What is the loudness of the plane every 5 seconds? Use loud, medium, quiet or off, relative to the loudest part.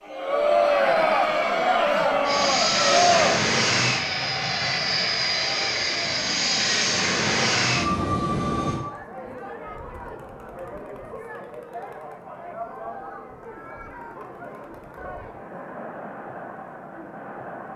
loud, loud, off, off.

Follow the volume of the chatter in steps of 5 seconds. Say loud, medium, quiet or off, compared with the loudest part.
loud, quiet, quiet, quiet.